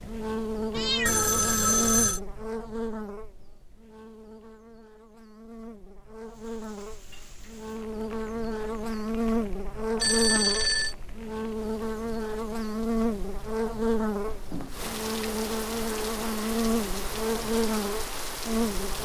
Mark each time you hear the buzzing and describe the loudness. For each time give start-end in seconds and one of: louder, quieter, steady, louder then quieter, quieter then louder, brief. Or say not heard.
0.0-19.0 quieter then louder.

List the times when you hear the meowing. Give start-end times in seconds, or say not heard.
0.7-1.9.